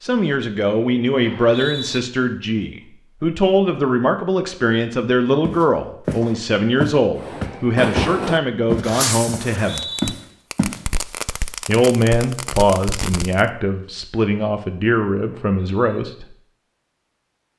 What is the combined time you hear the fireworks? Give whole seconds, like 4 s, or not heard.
6 s.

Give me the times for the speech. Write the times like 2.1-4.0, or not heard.
0.0-9.9, 11.7-16.4.